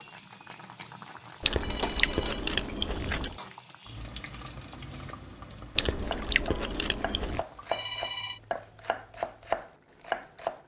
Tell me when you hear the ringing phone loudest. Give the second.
8 s.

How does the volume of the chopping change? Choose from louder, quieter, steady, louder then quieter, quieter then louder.
louder.